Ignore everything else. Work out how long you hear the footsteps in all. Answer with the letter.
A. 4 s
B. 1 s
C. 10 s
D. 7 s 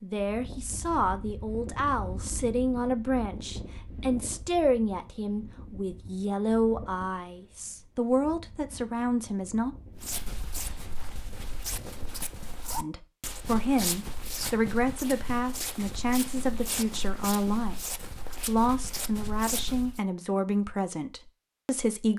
C.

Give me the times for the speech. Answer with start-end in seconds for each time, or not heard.
0.0-9.8, 12.8-22.1.